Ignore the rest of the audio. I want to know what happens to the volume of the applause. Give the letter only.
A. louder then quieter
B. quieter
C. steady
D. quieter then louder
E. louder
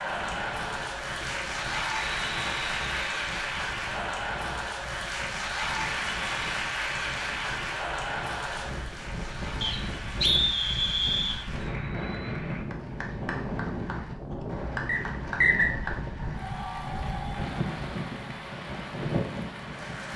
B.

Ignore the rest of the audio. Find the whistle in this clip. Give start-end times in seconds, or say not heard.
1.9-3.4, 9.6-11.4, 14.8-15.7.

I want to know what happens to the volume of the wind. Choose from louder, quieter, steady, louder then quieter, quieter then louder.
louder.